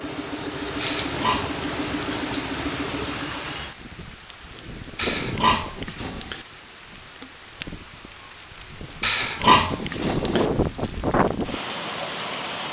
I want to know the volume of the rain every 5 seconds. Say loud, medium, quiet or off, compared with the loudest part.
medium, medium, loud.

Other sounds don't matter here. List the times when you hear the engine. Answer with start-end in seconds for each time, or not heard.
0.0-3.6.